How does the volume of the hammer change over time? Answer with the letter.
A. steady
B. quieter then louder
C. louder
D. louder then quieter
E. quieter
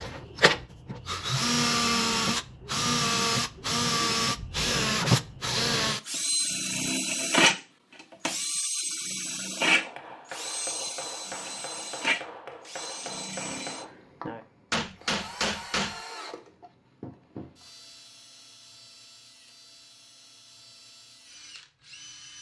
C.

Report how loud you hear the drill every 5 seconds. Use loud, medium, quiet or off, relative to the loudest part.
loud, loud, medium, quiet, quiet.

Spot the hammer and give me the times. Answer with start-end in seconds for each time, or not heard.
9.6-16.0.